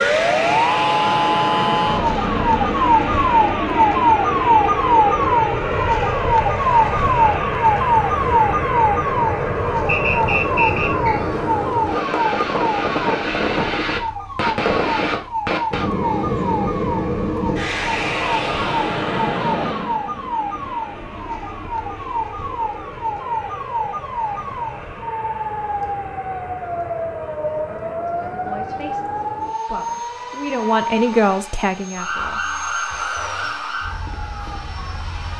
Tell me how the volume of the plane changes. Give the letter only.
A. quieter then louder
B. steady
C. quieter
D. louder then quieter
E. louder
C.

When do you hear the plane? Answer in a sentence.
The plane can be heard from 0.0 to 35.3 s.